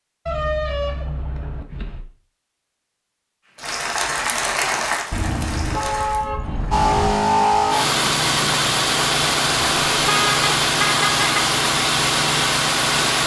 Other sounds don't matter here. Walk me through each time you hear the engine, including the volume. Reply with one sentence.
The engine can be heard from 6.7 to 13.2 s, at a steady volume.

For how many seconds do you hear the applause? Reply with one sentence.
You can hear the applause for 3 seconds altogether.